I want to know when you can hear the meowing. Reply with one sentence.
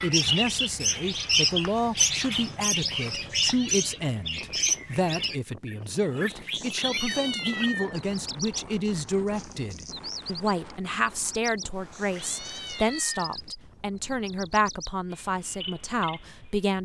The meowing can be heard from 3.4 to 3.9 s, from 6.5 to 8.0 s and from 11.9 to 13.3 s.